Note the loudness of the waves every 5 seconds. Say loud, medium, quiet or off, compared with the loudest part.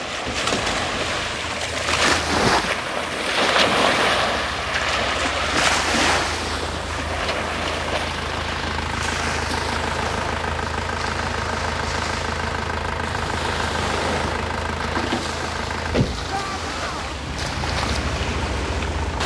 loud, loud, medium, medium.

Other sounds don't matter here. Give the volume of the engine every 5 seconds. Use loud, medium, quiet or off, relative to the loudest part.
medium, loud, loud, loud.